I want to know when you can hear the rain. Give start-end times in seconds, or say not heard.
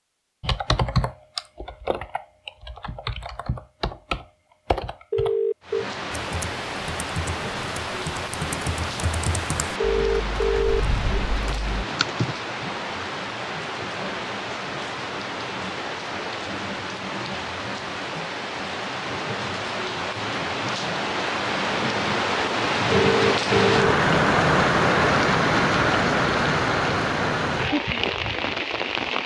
5.6-29.2.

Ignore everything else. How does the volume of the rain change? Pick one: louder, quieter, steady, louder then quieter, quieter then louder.
louder.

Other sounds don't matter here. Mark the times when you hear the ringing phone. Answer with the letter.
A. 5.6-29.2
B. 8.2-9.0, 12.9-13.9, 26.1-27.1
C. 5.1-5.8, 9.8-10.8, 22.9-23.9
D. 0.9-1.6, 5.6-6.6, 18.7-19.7
C.